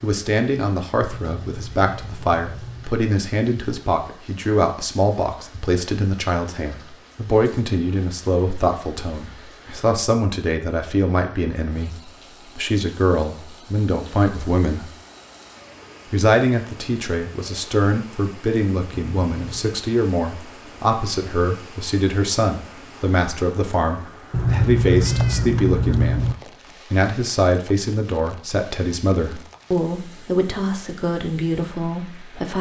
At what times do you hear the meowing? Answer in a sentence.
You can hear the meowing from 1.0 to 3.0 s, from 18.9 to 19.6 s and from 24.3 to 26.4 s.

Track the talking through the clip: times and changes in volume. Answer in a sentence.
You can hear the talking from 0.0 to 14.9 s, at a steady volume; and from 16.1 to 32.5 s, at a steady volume.